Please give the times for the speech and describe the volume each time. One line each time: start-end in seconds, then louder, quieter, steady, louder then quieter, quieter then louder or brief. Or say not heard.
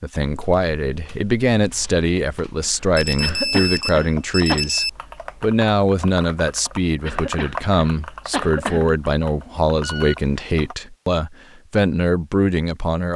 0.0-13.1 steady.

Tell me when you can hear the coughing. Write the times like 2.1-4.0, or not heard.
3.2-4.7, 7.0-8.9.